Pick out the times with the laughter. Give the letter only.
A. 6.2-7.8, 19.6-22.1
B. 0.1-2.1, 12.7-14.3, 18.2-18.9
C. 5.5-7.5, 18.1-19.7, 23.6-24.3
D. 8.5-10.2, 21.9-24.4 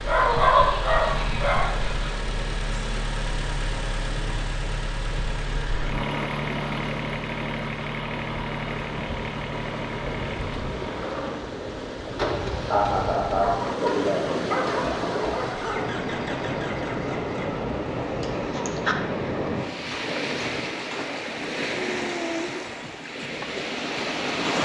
B.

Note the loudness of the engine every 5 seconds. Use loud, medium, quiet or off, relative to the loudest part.
loud, loud, loud, medium, off.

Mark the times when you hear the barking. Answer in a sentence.
The barking can be heard from 0.1 to 1.8 s and from 13.4 to 15.9 s.